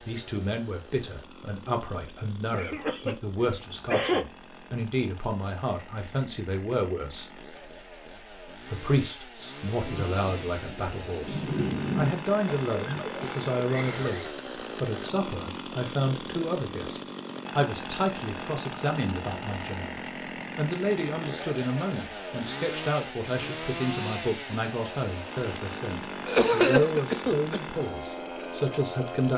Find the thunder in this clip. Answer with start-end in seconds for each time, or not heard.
9.8-12.1.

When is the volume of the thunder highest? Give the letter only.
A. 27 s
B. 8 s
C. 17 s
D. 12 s
D.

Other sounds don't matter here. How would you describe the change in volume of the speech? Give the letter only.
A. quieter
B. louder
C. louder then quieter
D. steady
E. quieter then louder
D.